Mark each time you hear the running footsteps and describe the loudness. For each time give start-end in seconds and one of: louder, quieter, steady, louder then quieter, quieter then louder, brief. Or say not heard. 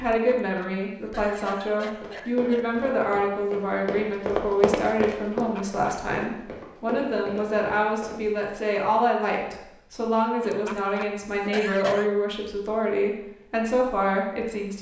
2.0-8.2 louder then quieter.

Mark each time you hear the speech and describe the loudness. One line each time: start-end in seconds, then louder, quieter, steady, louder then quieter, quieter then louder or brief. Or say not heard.
0.0-14.7 steady.